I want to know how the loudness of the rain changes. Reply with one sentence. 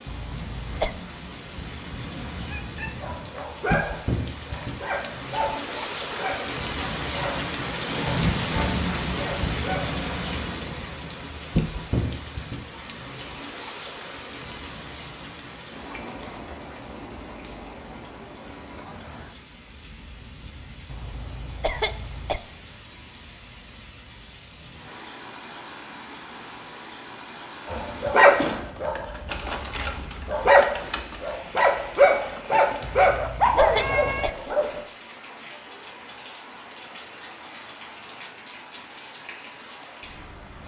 The loudness of the rain goes down.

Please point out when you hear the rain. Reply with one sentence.
You can hear the rain from 0.0 to 40.6 s.